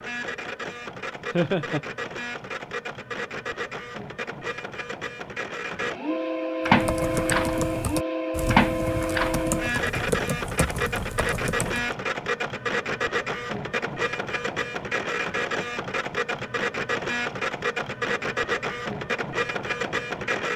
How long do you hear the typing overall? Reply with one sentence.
The typing can be heard for 5 seconds in total.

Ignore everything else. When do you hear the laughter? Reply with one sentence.
The laughter can be heard from 1.3 to 1.8 s.